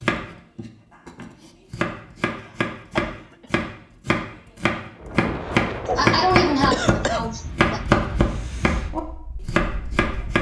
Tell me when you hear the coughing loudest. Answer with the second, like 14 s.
6 s.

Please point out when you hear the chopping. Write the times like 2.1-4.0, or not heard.
0.0-10.3.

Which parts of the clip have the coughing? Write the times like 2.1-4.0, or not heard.
2.4-3.5, 5.8-7.8.